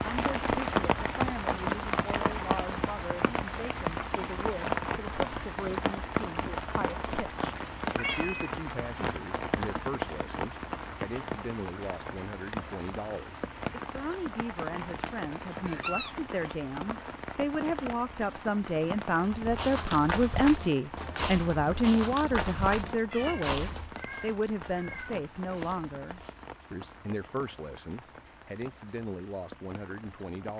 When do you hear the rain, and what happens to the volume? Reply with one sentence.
You can hear the rain from 0.0 to 30.5 s, getting quieter.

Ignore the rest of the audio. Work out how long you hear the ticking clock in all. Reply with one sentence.
You can't hear the ticking clock here.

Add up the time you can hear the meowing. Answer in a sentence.
You can hear the meowing for 4 seconds altogether.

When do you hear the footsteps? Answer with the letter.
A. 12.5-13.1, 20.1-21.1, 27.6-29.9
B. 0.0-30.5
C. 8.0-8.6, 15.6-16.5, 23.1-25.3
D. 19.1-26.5
D.